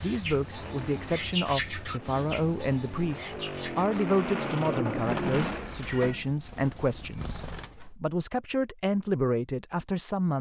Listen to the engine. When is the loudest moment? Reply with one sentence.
The loudest moment of the engine is at 5 seconds.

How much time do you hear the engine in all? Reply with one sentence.
You can hear the engine for 6 seconds altogether.